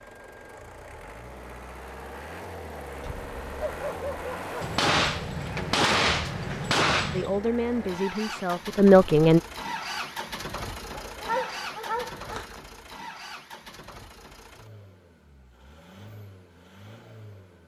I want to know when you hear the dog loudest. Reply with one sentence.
The loudest moment of the dog is at 11 seconds.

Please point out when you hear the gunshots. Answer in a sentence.
You can hear the gunshots from 4.6 to 7.4 s.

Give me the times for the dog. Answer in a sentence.
The dog can be heard from 3.0 to 4.8 s and from 10.9 to 12.6 s.